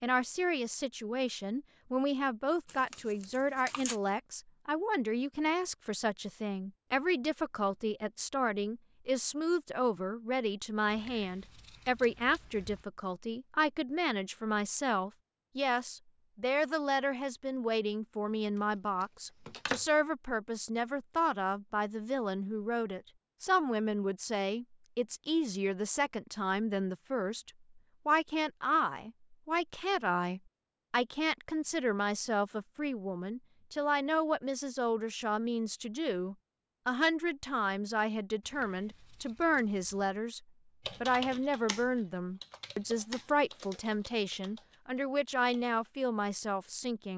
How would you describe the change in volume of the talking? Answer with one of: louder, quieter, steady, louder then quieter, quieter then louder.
steady.